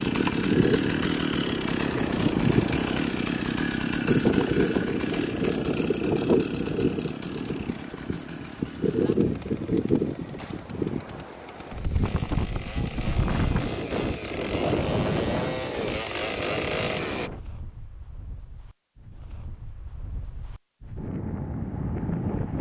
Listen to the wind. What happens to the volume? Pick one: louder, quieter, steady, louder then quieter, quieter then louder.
quieter.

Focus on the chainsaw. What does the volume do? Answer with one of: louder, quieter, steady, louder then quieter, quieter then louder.
quieter then louder.